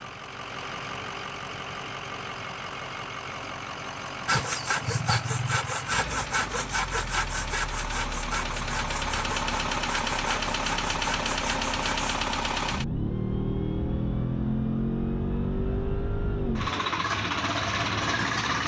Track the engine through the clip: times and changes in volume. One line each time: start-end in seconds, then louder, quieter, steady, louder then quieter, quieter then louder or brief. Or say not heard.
0.0-18.6 louder.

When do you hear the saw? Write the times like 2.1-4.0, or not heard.
4.2-12.2.